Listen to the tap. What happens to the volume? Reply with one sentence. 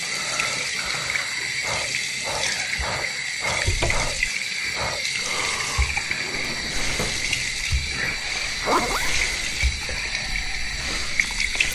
The volume of the tap stays about the same.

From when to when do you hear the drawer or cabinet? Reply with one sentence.
The drawer or cabinet can be heard from 3.6 to 4.3 s and from 6.0 to 8.2 s.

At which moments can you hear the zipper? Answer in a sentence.
You can hear the zipper from 8.6 to 9.1 s.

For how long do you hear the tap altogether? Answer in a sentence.
You can hear the tap for 12 seconds altogether.